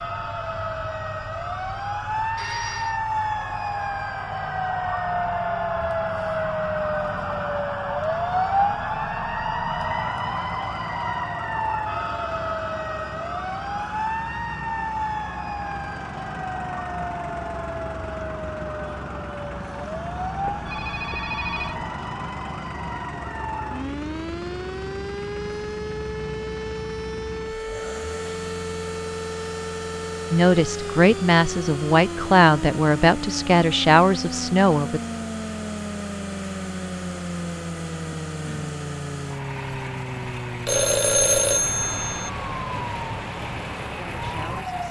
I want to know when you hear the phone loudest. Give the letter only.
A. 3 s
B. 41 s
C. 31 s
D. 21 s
B.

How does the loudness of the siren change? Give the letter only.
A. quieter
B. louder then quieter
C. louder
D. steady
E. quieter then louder
A.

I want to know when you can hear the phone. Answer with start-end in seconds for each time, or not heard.
2.1-3.0, 20.4-21.9, 40.6-42.3.